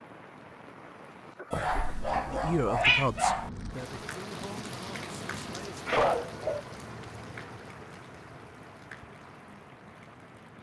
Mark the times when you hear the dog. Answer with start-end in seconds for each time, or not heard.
1.5-3.5, 5.8-7.0.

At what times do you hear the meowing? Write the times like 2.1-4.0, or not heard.
2.1-3.1.